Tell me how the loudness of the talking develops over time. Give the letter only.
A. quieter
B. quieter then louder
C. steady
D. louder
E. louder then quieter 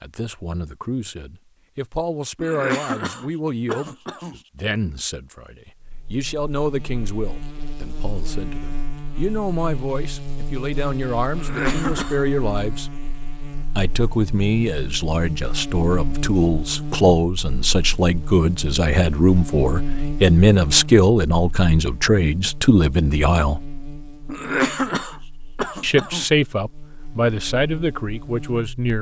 D.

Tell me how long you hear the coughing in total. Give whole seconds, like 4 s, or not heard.
5 s.